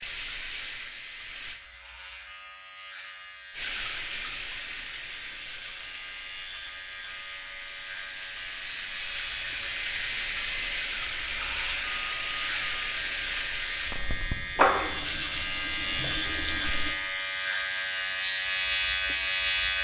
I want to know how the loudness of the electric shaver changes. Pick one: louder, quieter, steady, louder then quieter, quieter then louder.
louder.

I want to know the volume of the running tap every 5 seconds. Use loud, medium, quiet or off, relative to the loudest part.
medium, medium, loud, medium.